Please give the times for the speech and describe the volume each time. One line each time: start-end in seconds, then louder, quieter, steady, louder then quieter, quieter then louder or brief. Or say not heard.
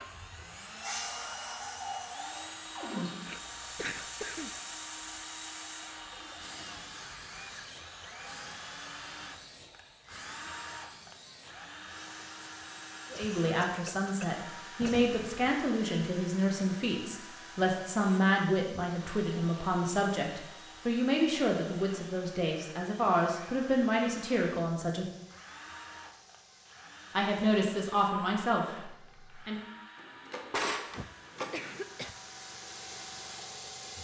13.1-25.1 steady
27.1-29.6 brief.